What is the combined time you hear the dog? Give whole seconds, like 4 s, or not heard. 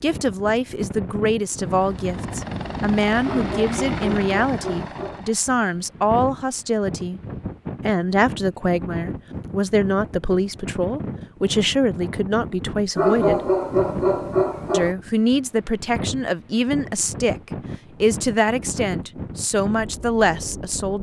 4 s.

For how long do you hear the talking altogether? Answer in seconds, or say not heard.
19 s.